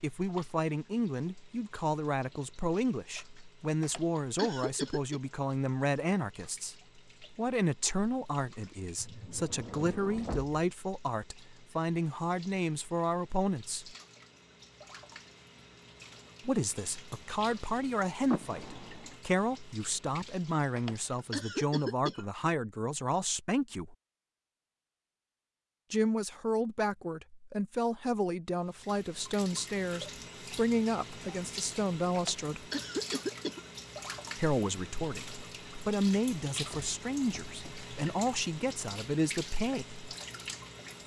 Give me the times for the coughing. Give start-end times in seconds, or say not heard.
3.8-5.2, 20.8-22.2, 32.1-33.6.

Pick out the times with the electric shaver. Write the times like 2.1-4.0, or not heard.
not heard.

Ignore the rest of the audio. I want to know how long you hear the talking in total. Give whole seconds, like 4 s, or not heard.
34 s.